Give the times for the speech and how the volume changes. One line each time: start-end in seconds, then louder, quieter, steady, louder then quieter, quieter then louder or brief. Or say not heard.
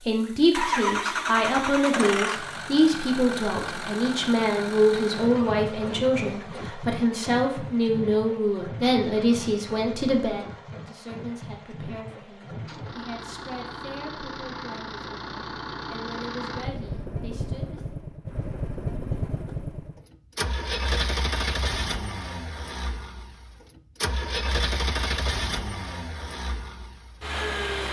0.0-17.8 quieter.